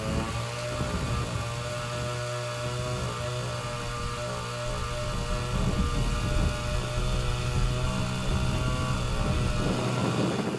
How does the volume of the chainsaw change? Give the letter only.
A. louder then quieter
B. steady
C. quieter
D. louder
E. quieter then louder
B.